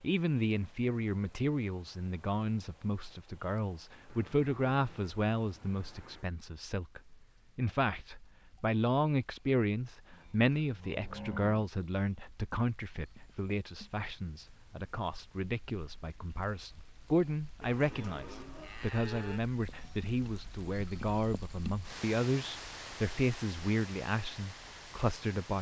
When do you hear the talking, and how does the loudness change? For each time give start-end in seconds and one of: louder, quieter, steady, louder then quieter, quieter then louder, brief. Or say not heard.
0.0-25.5 steady.